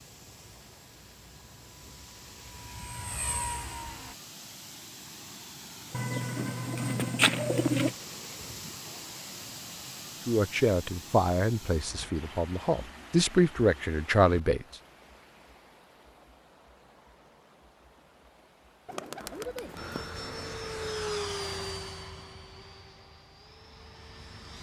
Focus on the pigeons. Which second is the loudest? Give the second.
7 s.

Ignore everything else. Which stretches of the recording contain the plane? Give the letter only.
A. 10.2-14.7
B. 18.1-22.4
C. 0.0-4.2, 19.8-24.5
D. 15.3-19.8
C.